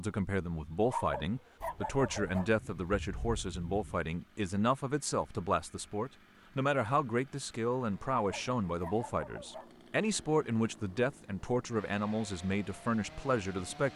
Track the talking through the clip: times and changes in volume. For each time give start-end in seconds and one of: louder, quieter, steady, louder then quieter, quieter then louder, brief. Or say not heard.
0.0-13.9 steady.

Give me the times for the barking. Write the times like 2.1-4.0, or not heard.
0.8-2.5, 8.2-9.7.